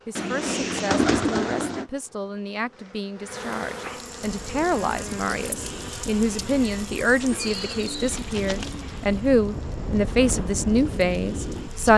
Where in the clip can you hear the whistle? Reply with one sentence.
You can't hear the whistle here.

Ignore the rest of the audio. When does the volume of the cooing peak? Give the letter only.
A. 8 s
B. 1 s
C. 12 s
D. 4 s
B.